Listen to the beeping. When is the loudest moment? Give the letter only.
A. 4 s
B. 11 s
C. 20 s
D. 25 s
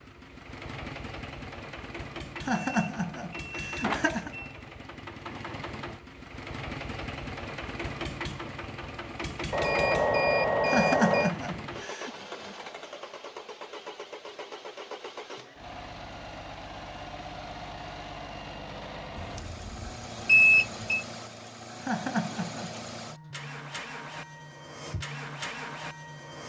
C.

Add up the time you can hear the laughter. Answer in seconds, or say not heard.
4 s.